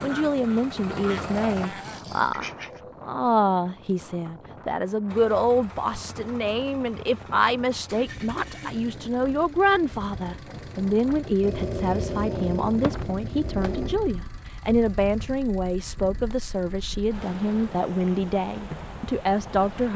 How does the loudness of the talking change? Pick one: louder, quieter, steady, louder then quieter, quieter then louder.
steady.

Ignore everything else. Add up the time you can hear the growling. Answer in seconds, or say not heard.
4 s.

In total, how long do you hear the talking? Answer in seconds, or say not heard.
20 s.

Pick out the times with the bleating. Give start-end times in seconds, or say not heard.
not heard.